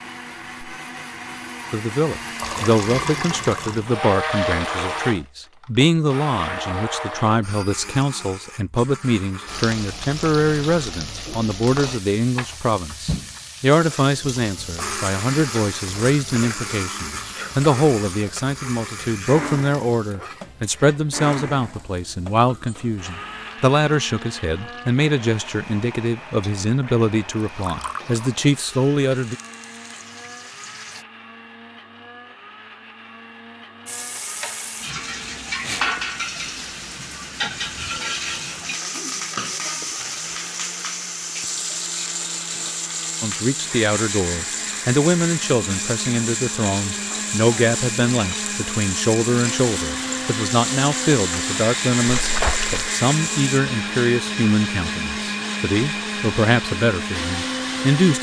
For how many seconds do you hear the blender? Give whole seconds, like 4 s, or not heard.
54 s.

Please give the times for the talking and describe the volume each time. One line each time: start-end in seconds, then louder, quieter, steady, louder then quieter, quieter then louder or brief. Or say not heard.
1.7-29.4 steady
43.2-58.1 steady.